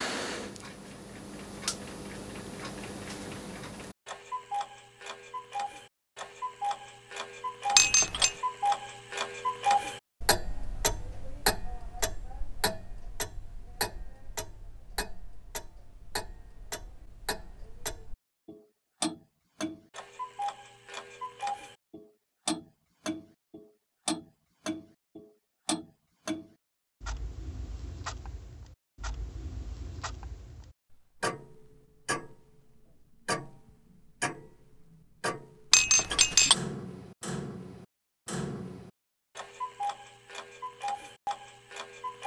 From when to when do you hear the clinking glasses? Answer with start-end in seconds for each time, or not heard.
7.8-8.3, 35.7-36.5.